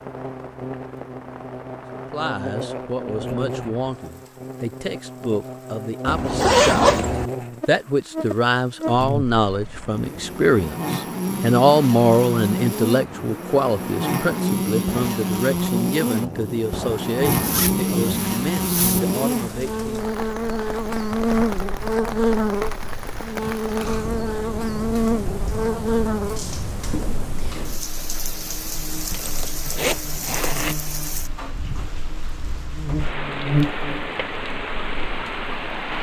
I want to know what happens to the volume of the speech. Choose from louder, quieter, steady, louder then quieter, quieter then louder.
louder then quieter.